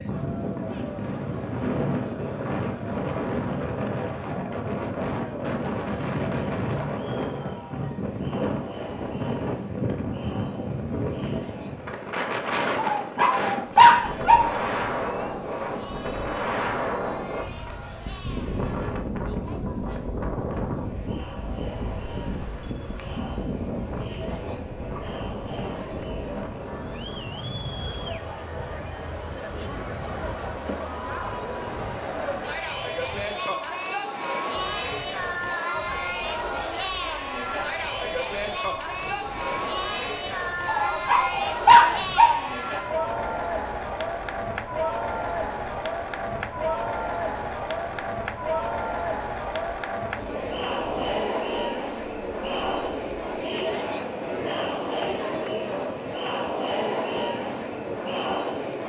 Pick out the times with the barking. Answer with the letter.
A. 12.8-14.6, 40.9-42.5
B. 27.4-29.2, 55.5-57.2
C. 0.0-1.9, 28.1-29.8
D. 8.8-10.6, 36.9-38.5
A.